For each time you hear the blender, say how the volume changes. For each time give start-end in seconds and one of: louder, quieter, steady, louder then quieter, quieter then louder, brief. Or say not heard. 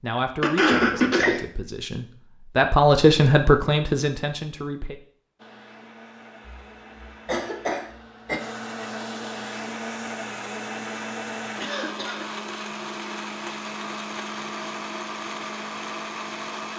5.3-16.7 louder.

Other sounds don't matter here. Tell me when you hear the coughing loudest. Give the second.
1 s.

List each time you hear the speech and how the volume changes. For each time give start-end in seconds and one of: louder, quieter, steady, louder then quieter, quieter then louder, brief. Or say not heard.
0.0-5.0 louder then quieter.